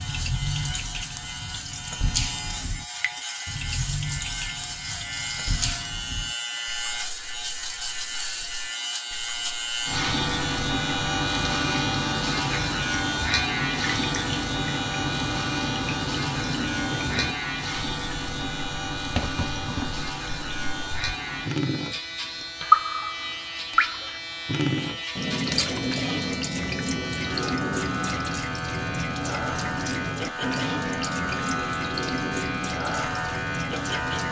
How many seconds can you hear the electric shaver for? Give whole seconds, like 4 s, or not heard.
34 s.